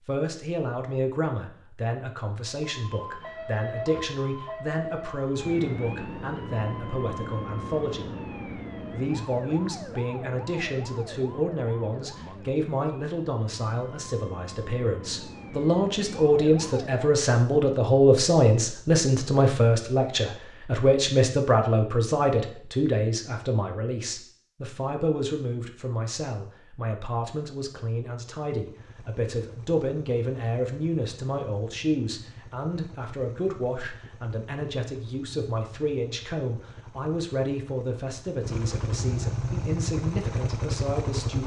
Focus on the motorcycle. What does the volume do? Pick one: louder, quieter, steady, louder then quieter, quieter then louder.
louder.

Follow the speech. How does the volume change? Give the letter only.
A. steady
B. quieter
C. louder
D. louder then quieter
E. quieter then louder
D.